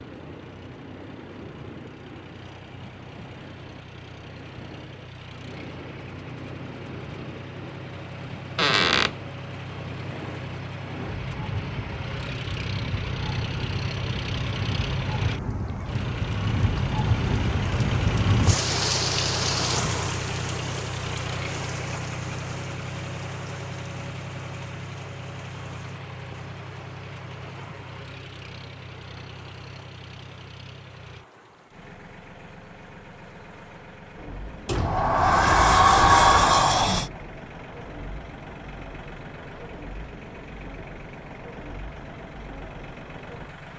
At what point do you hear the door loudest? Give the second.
36 s.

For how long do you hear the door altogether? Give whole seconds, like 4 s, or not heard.
3 s.